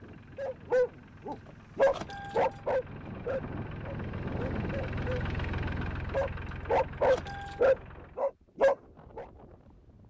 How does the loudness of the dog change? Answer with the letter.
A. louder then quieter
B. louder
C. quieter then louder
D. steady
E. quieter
C.